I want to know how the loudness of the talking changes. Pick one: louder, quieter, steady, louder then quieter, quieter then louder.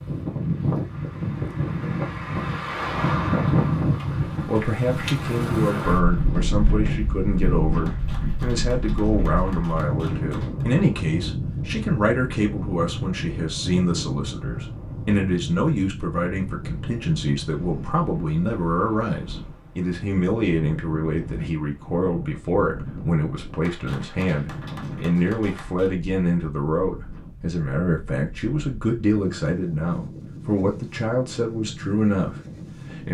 steady.